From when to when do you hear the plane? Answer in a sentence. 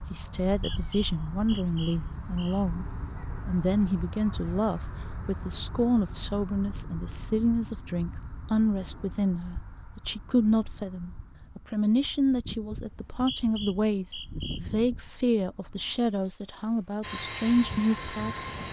You can hear the plane from 17.0 to 18.6 s.